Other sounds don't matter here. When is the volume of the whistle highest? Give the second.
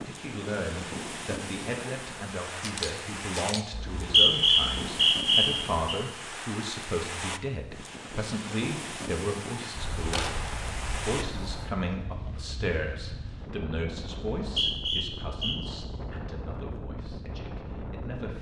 4 s.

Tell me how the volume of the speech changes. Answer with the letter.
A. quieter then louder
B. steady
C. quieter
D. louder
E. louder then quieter
C.